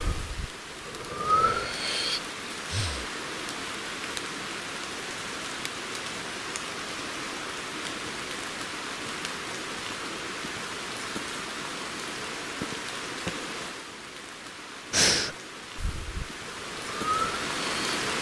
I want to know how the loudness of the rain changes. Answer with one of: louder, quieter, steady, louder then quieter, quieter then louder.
steady.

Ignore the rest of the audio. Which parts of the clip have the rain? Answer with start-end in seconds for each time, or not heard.
0.0-18.1.